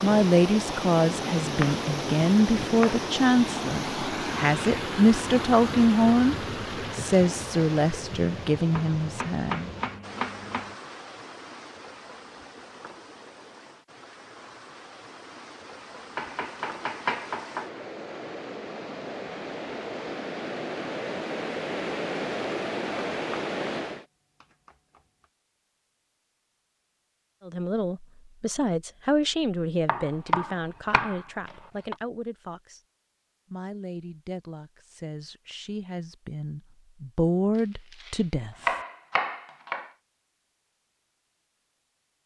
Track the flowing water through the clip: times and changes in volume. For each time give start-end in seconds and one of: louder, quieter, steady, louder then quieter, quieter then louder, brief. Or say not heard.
0.0-24.1 quieter then louder.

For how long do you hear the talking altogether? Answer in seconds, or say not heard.
20 s.